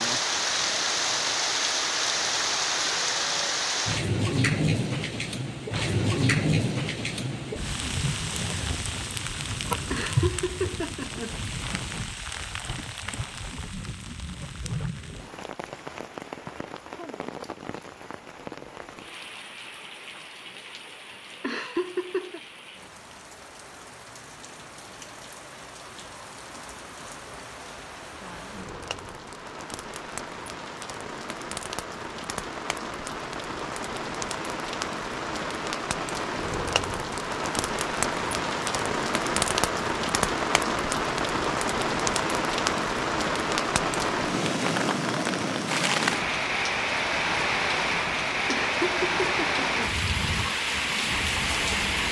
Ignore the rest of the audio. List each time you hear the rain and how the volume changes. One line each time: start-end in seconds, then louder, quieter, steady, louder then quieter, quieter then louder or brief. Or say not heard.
0.0-52.0 quieter then louder.